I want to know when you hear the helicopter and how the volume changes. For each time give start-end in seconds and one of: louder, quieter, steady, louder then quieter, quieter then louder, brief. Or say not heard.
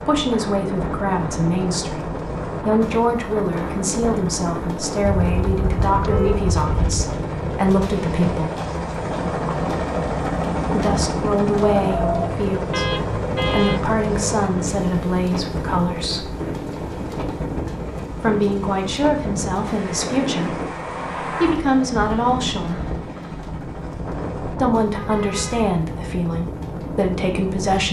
0.0-27.8 louder then quieter.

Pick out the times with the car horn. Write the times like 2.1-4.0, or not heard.
5.2-7.0, 12.7-13.8, 24.9-25.8.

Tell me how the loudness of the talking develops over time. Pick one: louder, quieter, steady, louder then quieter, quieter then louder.
steady.